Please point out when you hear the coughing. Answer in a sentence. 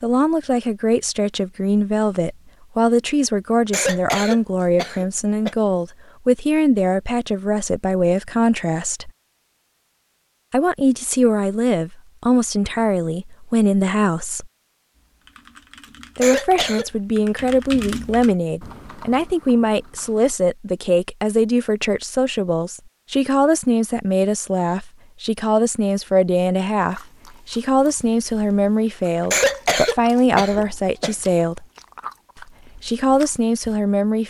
The coughing can be heard from 3.7 to 5.5 s, from 16.2 to 16.9 s and from 29.3 to 31.1 s.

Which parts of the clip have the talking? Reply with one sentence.
The talking can be heard from 0.0 to 9.1 s, from 10.5 to 14.5 s, from 16.1 to 31.6 s and from 32.4 to 34.2 s.